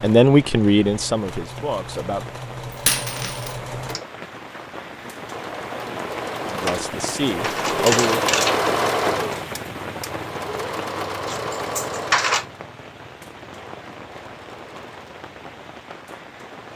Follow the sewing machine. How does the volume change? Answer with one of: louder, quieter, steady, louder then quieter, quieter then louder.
louder then quieter.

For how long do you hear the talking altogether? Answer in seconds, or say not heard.
4 s.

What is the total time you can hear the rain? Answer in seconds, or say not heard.
17 s.